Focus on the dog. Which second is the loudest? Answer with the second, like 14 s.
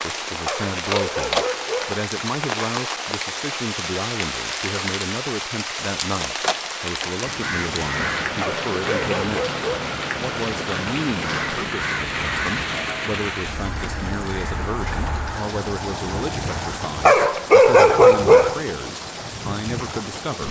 18 s.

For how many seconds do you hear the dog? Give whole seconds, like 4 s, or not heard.
5 s.